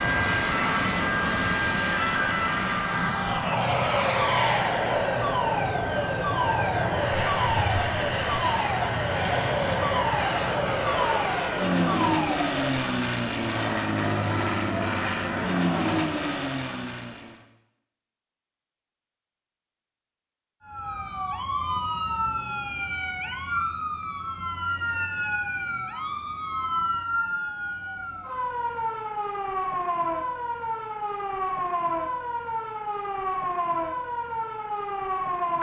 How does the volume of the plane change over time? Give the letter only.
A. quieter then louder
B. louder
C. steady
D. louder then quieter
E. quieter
C.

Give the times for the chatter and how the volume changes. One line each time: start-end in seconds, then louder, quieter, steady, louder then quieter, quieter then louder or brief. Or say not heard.
not heard.